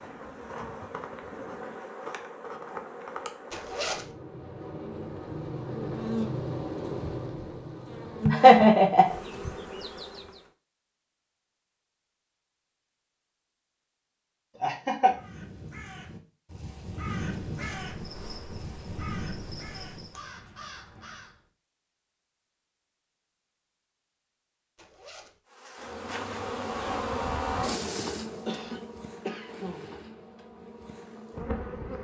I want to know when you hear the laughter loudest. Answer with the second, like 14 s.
9 s.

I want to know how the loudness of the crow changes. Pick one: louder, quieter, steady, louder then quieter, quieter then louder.
louder then quieter.